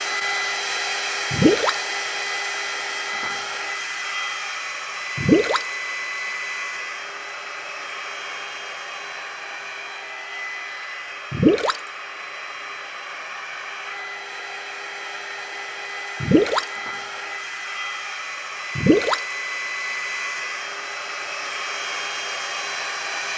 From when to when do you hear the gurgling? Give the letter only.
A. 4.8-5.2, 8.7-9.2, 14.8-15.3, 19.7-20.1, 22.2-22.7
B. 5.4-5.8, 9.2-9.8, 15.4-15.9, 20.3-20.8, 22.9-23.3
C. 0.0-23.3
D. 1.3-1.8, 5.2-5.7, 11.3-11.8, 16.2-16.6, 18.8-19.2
D.